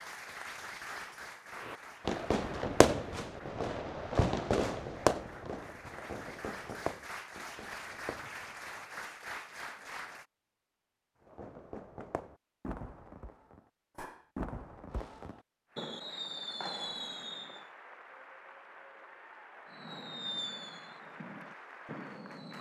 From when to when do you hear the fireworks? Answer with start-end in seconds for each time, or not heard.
1.6-8.7, 11.2-17.6, 19.7-22.5.